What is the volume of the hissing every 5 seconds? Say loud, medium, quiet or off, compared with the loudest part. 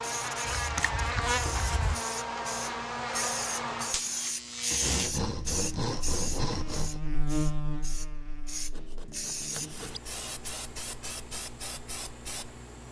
loud, loud, medium.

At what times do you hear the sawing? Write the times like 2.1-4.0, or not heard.
0.5-2.0, 4.7-7.0, 8.7-10.0.